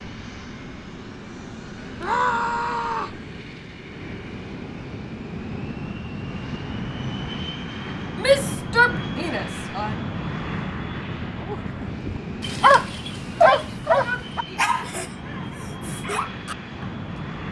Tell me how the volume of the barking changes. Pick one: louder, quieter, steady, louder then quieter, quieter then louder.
quieter.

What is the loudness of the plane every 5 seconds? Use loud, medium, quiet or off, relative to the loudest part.
medium, loud, loud, loud.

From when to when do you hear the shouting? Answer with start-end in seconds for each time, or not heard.
2.0-3.2, 8.2-9.9, 13.3-14.7.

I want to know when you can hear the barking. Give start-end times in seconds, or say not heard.
11.5-16.9.